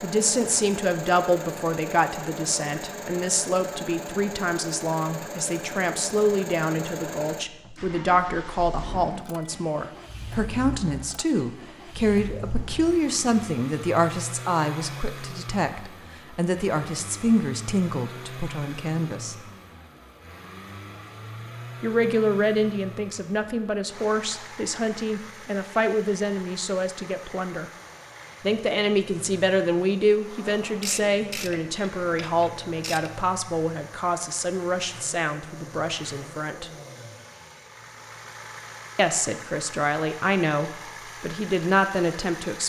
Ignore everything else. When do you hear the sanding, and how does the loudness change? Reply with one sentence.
You can't hear the sanding here.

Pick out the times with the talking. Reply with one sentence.
The talking can be heard from 0.0 to 19.4 s, from 21.8 to 27.7 s, from 28.4 to 36.7 s and from 39.0 to 42.6 s.